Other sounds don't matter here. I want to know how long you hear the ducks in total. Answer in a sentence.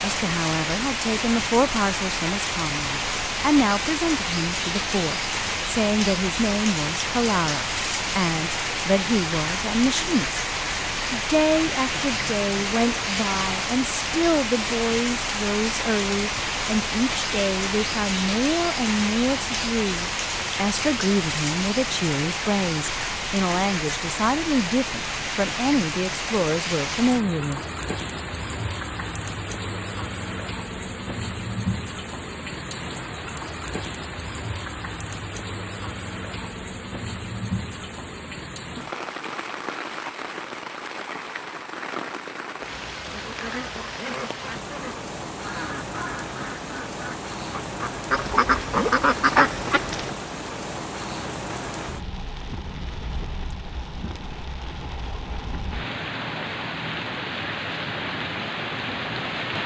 The ducks can be heard for 7 seconds in total.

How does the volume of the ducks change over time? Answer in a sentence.
The loudness of the ducks goes up.